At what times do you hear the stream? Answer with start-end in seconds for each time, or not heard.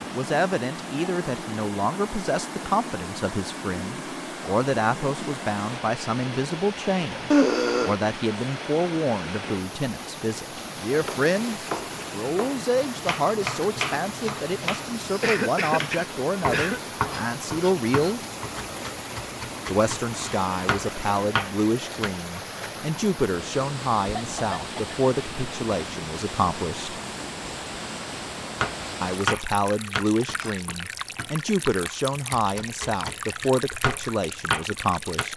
0.0-35.3.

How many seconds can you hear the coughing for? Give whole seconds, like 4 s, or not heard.
3 s.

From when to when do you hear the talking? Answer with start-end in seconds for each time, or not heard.
0.0-18.2, 19.6-27.0, 29.0-35.3.